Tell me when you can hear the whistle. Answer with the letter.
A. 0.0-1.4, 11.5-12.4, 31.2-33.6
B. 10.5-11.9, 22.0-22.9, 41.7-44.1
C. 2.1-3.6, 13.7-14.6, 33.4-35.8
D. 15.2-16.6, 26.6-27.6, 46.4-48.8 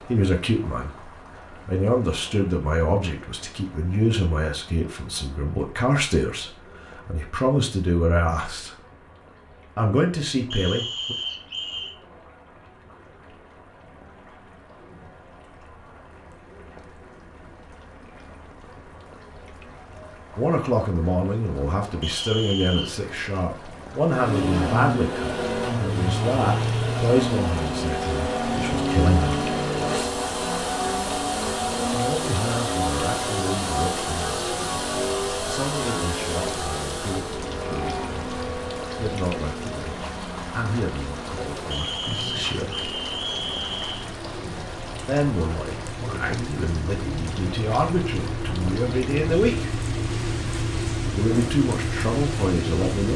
B.